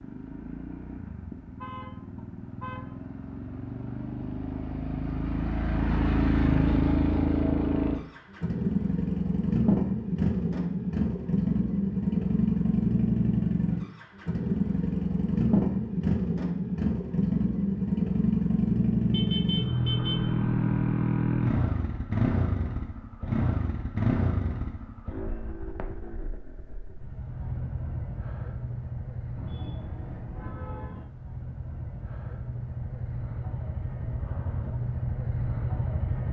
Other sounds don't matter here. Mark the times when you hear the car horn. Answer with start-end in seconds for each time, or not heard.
1.6-2.8, 19.1-20.2, 29.4-31.1.